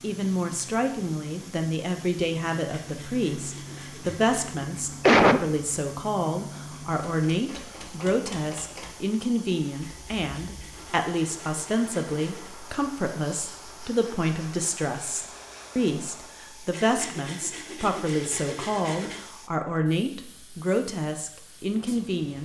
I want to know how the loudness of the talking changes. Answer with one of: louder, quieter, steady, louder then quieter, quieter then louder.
steady.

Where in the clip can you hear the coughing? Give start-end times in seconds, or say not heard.
4.0-5.5.